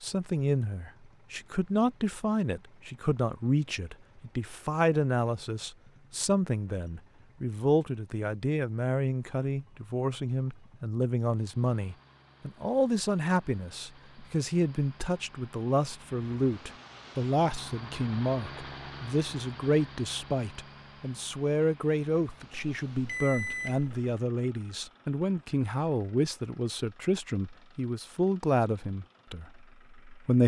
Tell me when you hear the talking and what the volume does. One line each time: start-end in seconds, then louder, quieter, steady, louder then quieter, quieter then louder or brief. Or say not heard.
0.0-30.4 steady.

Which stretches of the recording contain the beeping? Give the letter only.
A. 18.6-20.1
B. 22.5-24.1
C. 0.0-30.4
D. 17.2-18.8
B.